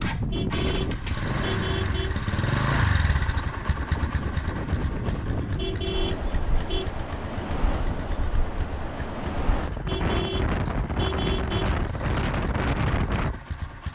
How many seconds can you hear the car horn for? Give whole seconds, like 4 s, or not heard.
5 s.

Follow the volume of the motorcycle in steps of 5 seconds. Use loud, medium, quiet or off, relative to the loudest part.
loud, medium, medium.